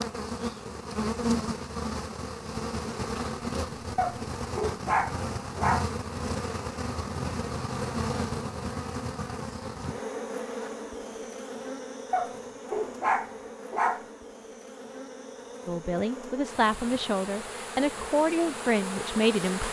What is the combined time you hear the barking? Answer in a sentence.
You can hear the barking for 4 seconds altogether.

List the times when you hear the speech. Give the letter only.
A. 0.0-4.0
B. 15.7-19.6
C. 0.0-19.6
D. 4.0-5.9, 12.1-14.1
B.